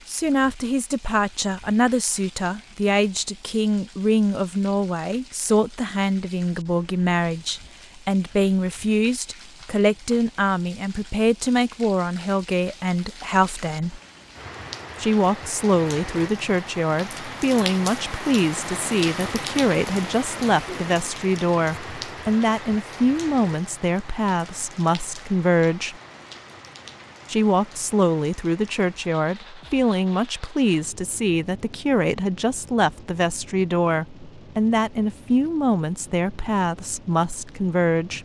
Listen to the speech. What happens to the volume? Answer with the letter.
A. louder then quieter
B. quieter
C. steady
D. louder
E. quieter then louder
C.